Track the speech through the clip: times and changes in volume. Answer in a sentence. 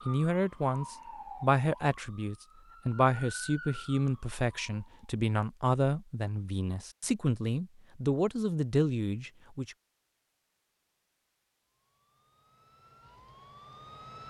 The speech can be heard from 0.1 to 9.8 s, at a steady volume.